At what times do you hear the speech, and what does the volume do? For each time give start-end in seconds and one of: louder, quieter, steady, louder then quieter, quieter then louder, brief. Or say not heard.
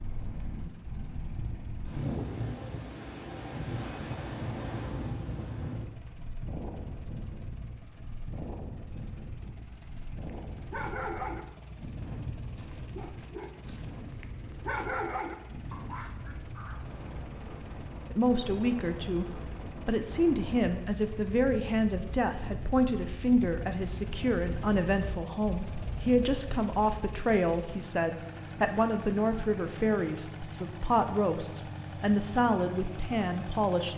18.1-33.9 steady.